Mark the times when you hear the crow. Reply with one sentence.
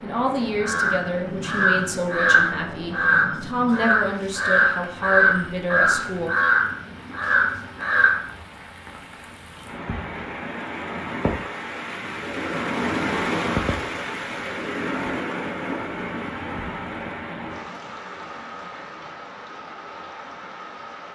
The crow can be heard from 0.6 to 8.3 s.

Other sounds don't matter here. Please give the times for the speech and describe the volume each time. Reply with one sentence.
The speech can be heard from 0.0 to 6.3 s, at a steady volume.